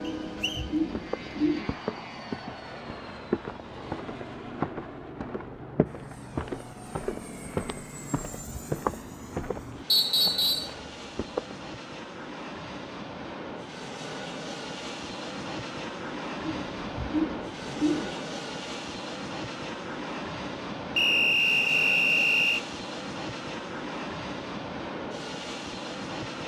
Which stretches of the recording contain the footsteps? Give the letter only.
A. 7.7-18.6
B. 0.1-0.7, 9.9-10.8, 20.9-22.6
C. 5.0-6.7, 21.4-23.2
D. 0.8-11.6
D.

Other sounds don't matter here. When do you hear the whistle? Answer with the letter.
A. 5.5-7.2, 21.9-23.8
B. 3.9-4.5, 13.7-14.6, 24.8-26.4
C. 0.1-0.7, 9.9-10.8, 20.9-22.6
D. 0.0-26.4
C.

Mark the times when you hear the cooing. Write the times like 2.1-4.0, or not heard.
0.0-1.7, 16.4-18.2.